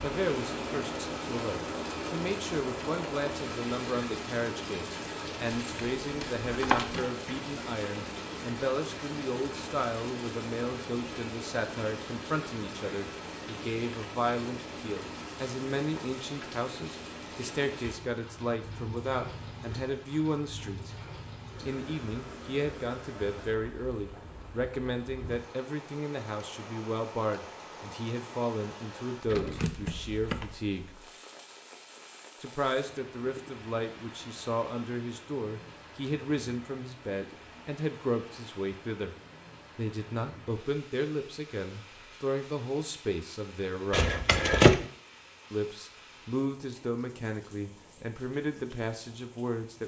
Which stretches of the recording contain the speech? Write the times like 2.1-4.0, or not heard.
0.0-20.9, 21.6-30.9, 32.4-39.1, 39.8-44.1, 45.5-49.8.